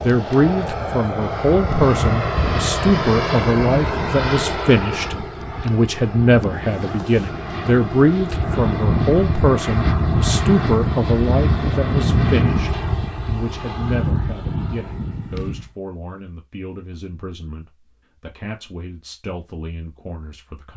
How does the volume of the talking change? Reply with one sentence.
The volume of the talking goes down.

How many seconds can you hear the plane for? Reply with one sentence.
You can hear the plane for 16 seconds altogether.